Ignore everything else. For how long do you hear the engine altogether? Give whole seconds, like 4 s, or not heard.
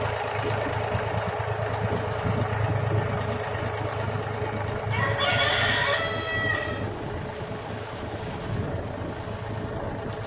10 s.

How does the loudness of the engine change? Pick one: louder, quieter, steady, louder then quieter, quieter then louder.
quieter.